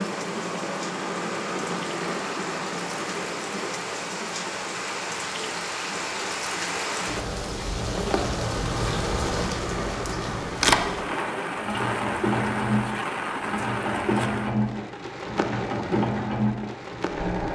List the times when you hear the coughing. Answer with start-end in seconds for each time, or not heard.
not heard.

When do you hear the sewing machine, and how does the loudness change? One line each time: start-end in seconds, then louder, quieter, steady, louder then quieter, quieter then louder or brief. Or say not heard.
0.0-17.5 quieter then louder.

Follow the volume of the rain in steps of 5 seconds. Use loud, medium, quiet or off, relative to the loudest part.
medium, loud, loud, medium.